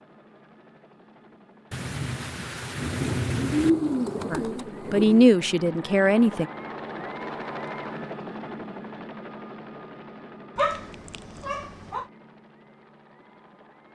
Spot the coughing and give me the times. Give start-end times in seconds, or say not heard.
not heard.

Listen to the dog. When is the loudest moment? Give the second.
11 s.